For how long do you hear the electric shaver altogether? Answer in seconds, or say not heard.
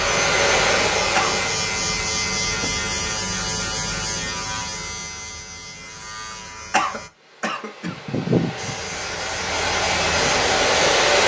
10 s.